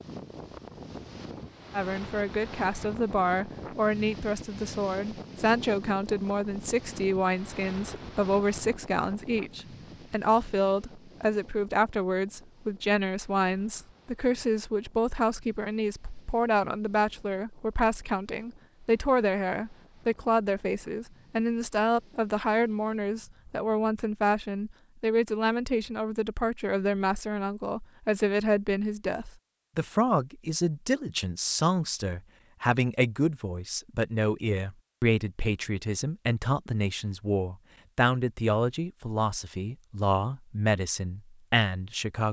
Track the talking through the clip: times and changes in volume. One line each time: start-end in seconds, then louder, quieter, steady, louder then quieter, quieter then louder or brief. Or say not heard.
1.7-42.2 steady.